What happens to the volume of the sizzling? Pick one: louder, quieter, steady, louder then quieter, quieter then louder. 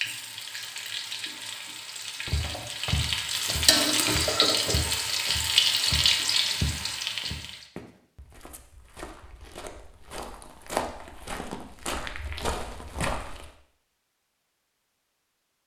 louder.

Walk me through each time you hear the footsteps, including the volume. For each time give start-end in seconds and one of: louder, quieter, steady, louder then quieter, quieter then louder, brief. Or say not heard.
2.2-13.5 quieter then louder.